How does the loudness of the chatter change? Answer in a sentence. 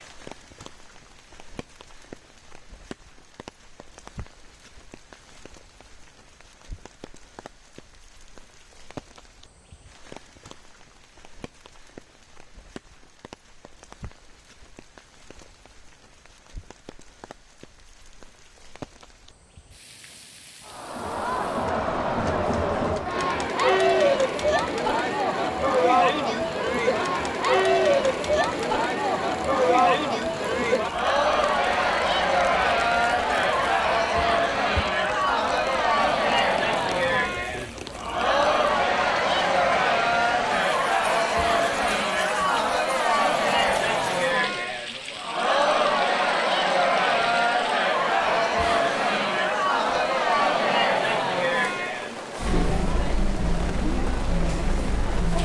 The volume of the chatter stays about the same.